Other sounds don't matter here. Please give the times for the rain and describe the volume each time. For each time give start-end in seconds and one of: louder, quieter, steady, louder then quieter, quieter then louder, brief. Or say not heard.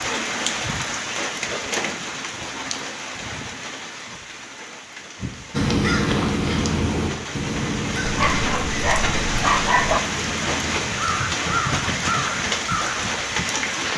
0.0-13.9 quieter then louder.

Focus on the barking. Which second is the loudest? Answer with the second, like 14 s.
10 s.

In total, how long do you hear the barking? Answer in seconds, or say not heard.
2 s.